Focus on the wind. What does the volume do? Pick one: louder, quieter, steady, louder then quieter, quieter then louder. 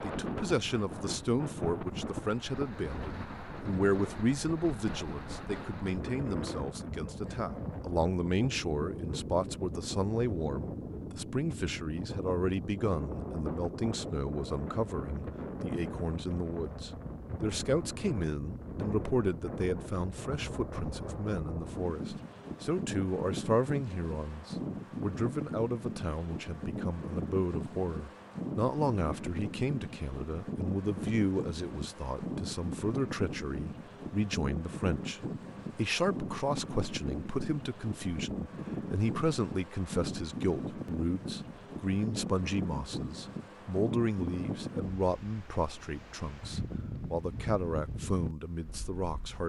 steady.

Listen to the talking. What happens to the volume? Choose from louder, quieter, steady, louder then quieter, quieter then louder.
steady.